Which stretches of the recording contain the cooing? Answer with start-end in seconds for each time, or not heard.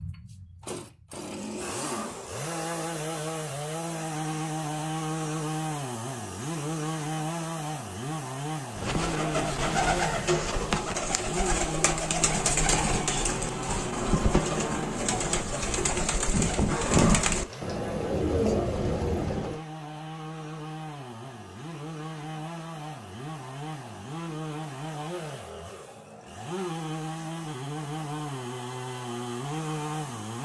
8.8-19.6.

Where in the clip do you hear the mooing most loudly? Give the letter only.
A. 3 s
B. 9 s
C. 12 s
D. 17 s
D.